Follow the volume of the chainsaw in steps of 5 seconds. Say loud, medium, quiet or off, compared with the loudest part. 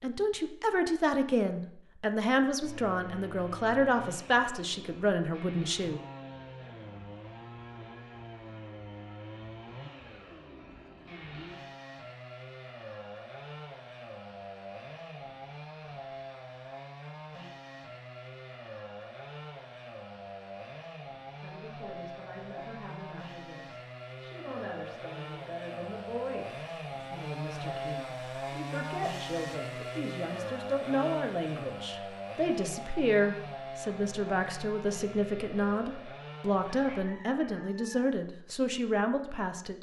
medium, medium, medium, medium, medium, loud, loud, medium.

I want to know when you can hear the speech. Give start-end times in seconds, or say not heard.
0.0-6.0, 21.4-39.7.